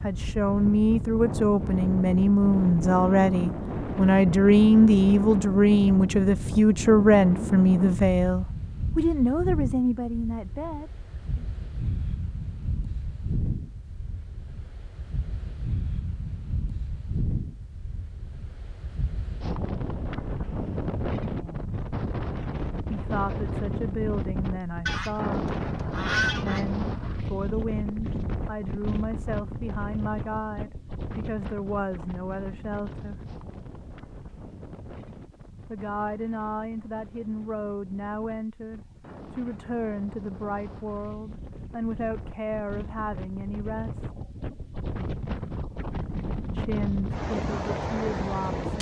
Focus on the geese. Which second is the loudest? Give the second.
26 s.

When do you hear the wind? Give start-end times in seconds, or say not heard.
0.0-48.7.